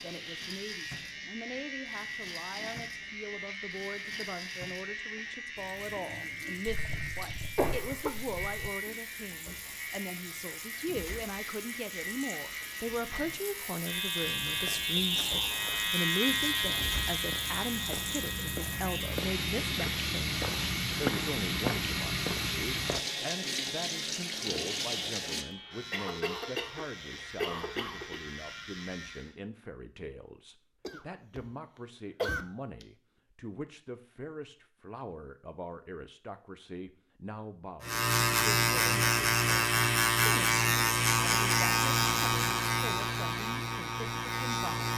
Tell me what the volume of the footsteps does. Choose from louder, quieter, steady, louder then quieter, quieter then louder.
louder.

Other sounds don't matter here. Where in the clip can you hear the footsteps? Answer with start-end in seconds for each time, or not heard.
14.3-23.0.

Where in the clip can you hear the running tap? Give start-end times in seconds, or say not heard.
0.0-25.4.